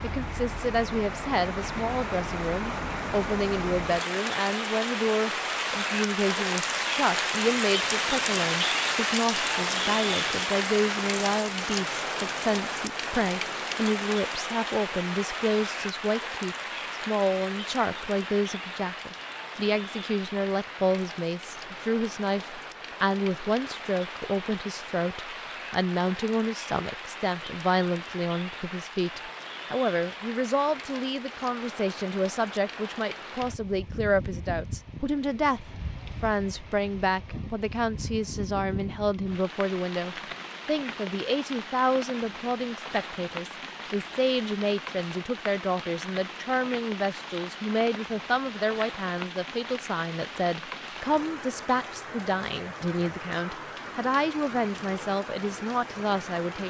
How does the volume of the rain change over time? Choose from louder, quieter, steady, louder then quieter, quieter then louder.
quieter.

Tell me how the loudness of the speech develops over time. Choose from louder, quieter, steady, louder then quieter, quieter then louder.
steady.